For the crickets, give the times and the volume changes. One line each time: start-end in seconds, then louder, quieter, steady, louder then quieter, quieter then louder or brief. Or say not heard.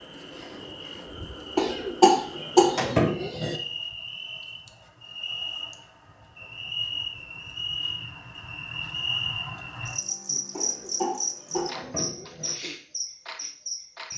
0.0-14.1 louder.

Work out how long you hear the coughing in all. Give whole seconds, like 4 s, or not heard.
4 s.